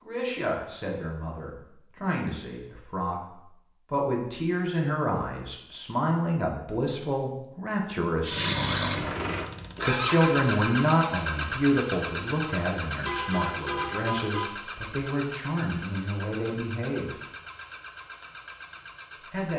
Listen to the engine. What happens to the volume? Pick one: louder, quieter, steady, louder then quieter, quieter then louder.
quieter.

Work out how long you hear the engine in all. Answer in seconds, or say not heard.
11 s.